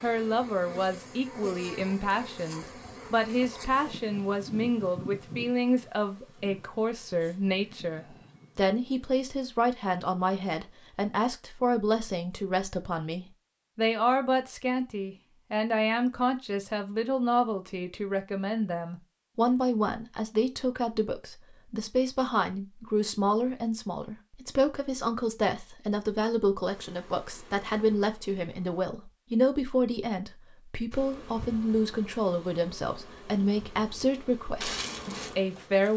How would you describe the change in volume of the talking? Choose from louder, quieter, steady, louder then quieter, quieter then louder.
steady.